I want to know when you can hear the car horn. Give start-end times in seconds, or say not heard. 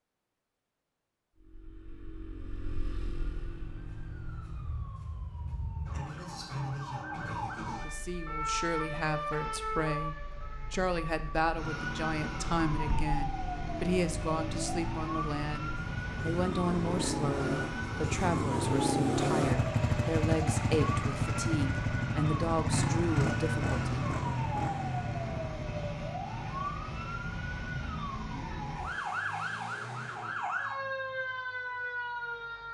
not heard.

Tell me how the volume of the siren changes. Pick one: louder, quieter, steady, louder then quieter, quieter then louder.
steady.